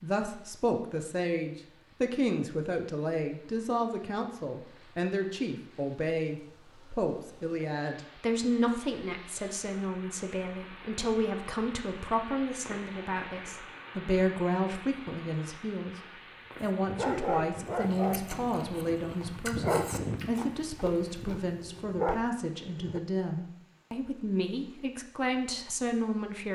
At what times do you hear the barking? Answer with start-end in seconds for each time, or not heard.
16.8-23.0.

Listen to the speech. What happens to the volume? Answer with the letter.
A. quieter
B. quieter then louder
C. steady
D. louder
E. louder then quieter
C.